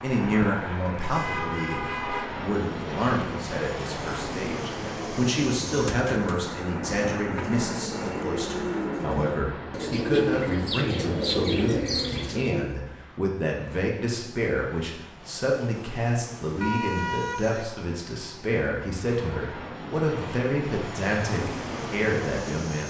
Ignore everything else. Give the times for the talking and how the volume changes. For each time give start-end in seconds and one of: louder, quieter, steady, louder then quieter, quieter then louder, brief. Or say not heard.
0.0-22.8 steady.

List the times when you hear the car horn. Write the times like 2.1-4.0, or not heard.
1.1-2.3, 16.6-17.6.